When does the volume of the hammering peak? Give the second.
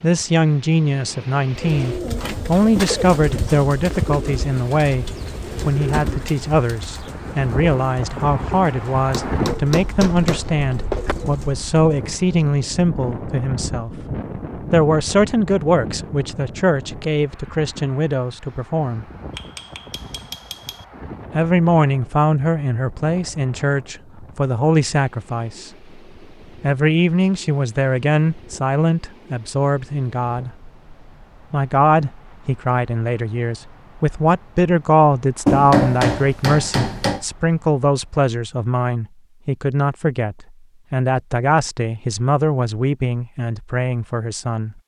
36 s.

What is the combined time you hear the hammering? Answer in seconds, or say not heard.
5 s.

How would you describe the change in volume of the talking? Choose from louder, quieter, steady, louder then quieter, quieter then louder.
steady.